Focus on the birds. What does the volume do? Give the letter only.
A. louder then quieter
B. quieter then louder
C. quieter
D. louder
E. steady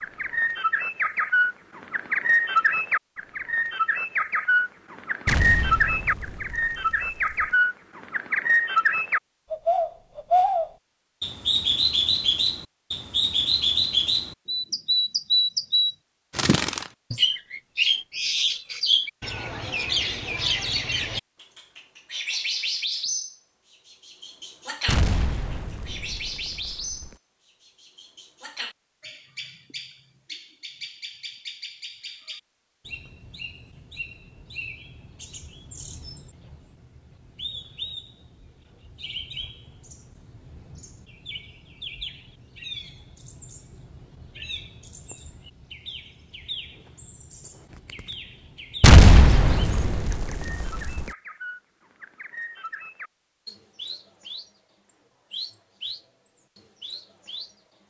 C.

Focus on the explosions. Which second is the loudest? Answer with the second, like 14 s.
49 s.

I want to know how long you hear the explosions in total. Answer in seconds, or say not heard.
7 s.